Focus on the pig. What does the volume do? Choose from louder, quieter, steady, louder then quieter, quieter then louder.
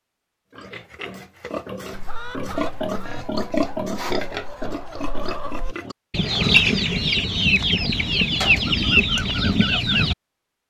louder then quieter.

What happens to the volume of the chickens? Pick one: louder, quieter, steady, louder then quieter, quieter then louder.
louder.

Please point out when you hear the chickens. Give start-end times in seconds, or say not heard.
1.9-10.2.